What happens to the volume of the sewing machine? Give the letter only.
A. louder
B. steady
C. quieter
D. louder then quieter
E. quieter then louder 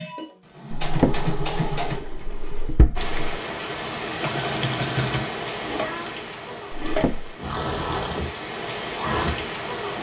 E.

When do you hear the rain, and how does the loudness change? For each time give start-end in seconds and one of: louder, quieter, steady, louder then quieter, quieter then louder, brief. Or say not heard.
3.0-9.9 quieter then louder.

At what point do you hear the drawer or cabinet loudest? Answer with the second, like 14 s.
1 s.